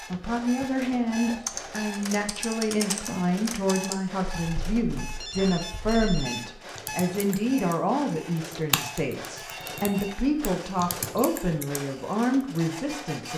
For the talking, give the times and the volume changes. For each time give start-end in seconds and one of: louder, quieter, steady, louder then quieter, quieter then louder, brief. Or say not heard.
0.1-13.3 steady.